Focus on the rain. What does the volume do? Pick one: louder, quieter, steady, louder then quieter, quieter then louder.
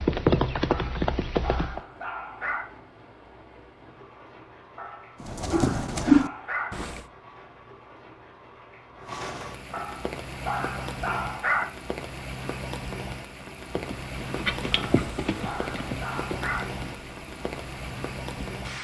louder.